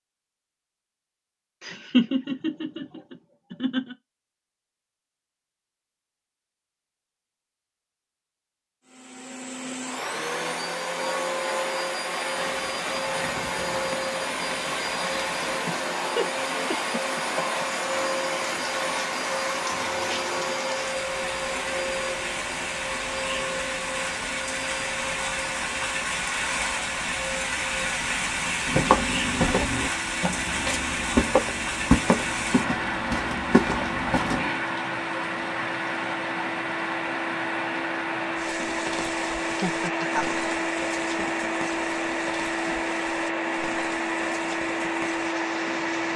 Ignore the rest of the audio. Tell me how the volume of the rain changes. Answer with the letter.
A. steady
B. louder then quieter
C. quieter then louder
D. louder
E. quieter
B.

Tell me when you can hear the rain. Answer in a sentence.
You can hear the rain from 12.2 to 46.1 s.